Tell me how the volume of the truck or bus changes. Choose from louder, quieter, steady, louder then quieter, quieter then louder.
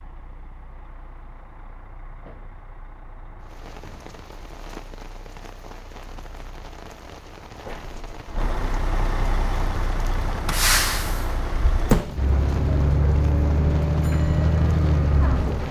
louder.